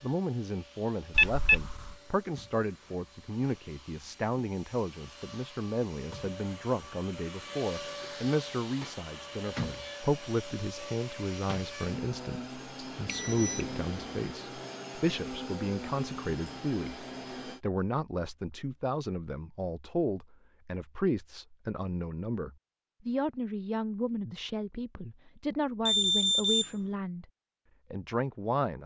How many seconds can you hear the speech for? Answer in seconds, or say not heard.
28 s.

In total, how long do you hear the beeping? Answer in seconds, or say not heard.
3 s.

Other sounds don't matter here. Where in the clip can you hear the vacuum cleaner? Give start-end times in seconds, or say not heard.
0.0-17.6.